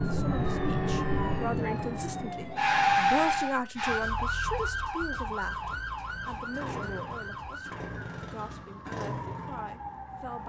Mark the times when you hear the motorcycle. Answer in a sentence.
You can hear the motorcycle from 5.4 to 10.4 s.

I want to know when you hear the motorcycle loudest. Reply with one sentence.
The loudest moment of the motorcycle is at 9 seconds.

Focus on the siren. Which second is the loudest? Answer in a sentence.
The loudest moment of the siren is at 3 seconds.